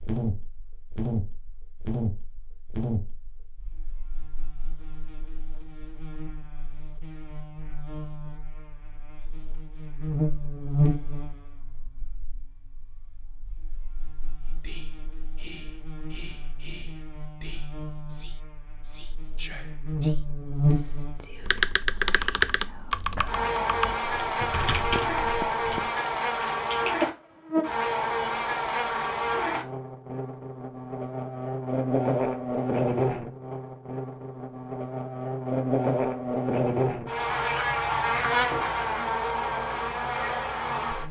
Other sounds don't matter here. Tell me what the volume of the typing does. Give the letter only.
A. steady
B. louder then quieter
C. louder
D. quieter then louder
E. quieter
E.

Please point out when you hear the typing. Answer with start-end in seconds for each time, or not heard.
21.4-27.1.